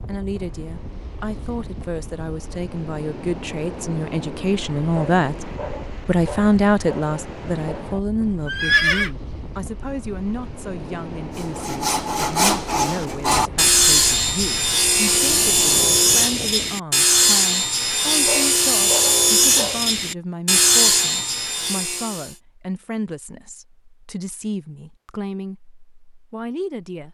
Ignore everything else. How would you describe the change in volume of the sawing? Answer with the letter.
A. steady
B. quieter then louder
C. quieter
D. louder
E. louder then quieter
A.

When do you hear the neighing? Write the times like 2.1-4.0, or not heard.
8.4-9.1.